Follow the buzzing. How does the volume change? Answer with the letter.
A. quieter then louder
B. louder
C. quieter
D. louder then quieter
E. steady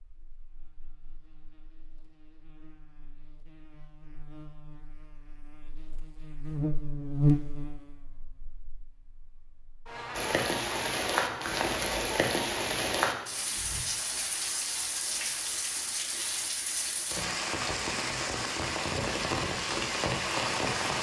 D.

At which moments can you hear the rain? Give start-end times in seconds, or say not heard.
10.1-20.9.